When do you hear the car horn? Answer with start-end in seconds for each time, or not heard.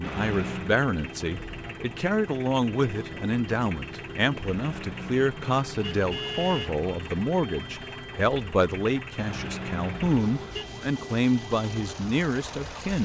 0.0-0.8, 4.5-6.8, 9.2-10.7.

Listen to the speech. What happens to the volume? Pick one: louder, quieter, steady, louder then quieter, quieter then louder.
steady.